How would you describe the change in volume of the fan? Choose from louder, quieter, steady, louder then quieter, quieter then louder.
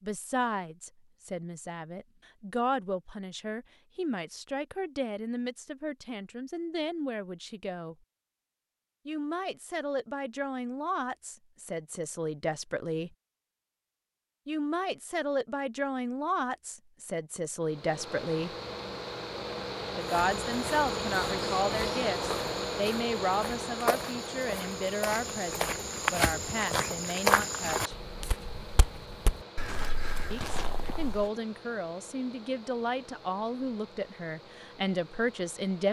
quieter.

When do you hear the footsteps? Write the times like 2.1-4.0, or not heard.
20.0-31.2.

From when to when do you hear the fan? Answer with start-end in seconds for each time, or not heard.
17.6-35.8.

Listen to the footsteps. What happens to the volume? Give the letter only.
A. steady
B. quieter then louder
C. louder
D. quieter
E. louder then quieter
E.